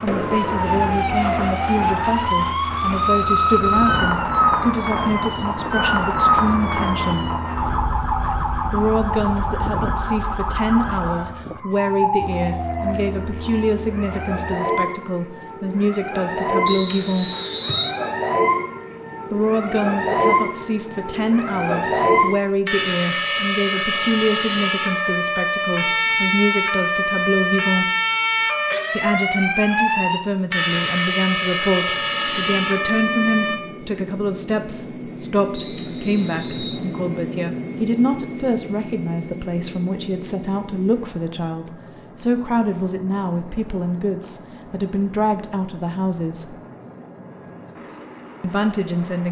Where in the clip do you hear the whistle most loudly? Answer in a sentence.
The volume of the whistle peaks at 17 seconds.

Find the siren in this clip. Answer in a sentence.
The siren can be heard from 0.0 to 33.6 s.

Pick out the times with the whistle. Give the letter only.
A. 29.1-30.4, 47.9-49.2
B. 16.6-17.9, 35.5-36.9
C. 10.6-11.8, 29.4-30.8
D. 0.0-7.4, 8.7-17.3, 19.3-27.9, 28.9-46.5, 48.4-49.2
B.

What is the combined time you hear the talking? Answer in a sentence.
The talking can be heard for 43 seconds in total.